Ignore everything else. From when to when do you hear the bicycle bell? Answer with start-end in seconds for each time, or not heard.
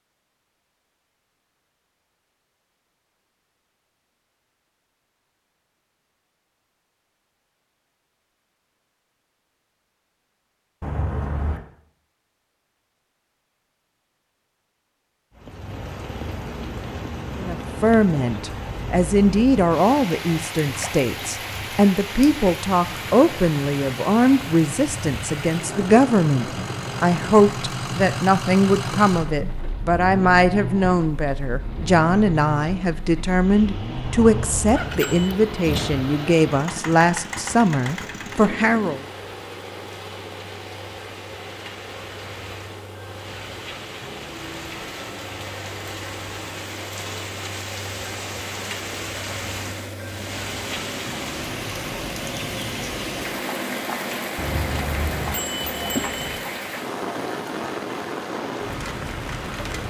10.8-11.6, 34.0-35.3, 54.4-56.4.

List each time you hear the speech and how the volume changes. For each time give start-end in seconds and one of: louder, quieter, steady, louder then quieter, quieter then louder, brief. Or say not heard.
17.4-39.0 steady.